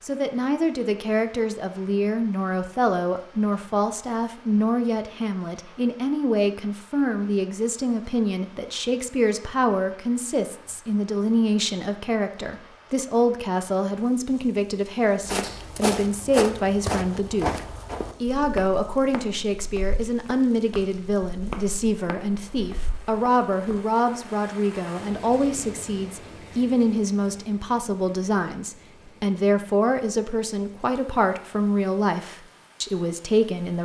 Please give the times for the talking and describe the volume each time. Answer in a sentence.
You can hear the talking from 0.0 to 33.7 s, at a steady volume.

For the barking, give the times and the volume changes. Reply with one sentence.
The barking can't be heard in this clip.